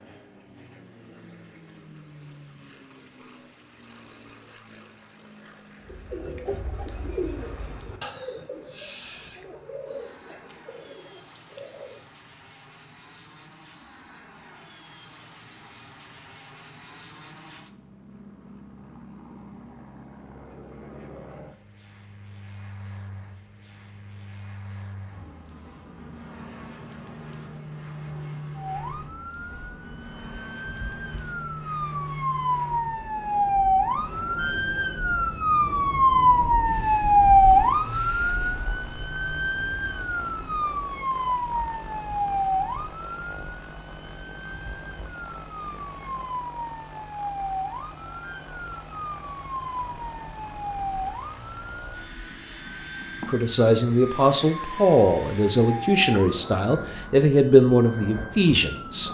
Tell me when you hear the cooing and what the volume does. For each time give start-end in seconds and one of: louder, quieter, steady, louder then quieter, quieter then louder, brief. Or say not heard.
5.8-12.0 quieter.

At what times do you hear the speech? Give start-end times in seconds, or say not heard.
53.2-59.0.